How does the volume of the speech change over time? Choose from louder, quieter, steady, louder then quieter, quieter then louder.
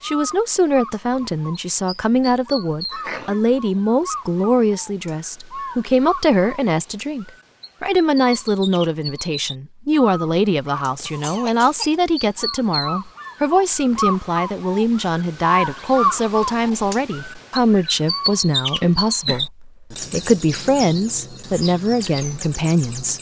steady.